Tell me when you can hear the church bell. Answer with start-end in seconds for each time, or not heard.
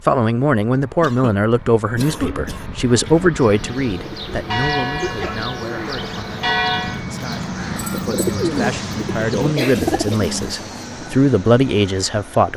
3.3-7.0.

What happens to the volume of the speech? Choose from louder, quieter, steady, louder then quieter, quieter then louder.
quieter then louder.